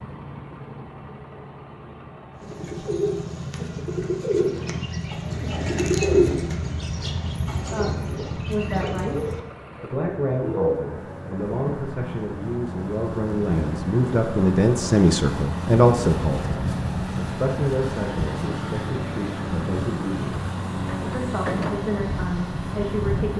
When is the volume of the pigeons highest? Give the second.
6 s.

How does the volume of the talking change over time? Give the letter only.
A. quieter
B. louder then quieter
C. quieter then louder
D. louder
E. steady
B.